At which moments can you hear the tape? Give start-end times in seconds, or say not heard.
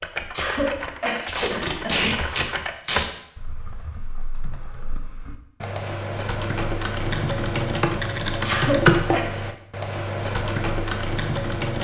1.2-3.0.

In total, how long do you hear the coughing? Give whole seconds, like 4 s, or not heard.
3 s.